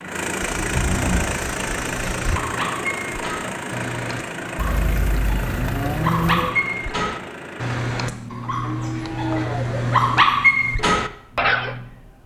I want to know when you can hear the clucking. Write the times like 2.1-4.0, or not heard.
not heard.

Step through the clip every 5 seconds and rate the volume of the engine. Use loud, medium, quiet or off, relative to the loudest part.
loud, medium, medium.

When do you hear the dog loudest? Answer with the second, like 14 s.
10 s.